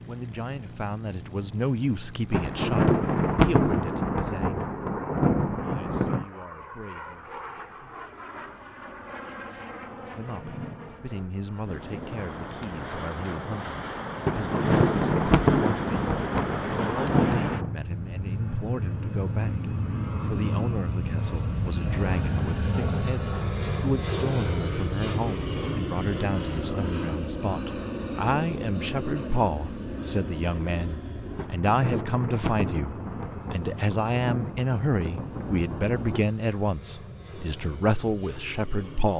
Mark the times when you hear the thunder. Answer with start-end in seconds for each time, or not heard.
2.3-6.2, 14.2-17.7, 31.4-36.2.